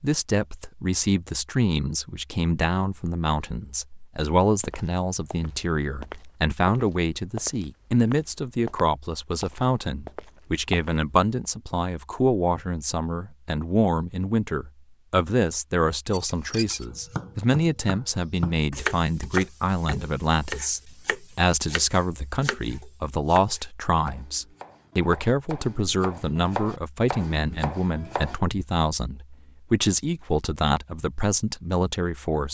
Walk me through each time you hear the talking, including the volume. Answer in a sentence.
You can hear the talking from 0.0 to 32.5 s, at a steady volume.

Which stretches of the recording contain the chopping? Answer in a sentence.
The chopping can be heard from 16.9 to 28.4 s.